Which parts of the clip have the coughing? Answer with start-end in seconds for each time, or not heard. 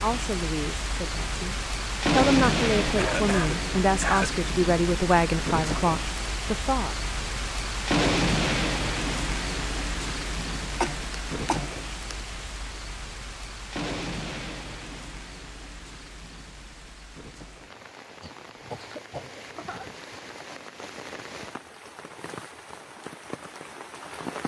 3.0-4.3, 10.7-12.2, 18.2-19.9.